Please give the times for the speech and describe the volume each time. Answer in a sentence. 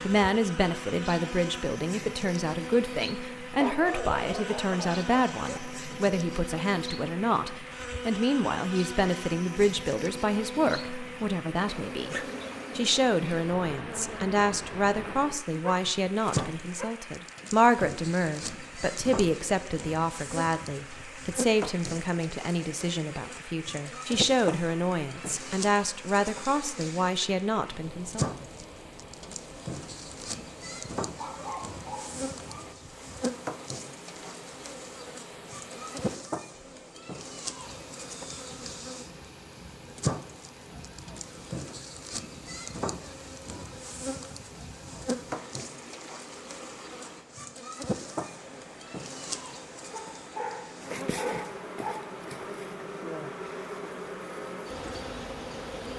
The speech can be heard from 0.0 to 12.2 s, at a steady volume; and from 12.8 to 28.2 s, at a steady volume.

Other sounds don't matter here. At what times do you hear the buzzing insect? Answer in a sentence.
You can hear the buzzing insect from 0.0 to 55.9 s.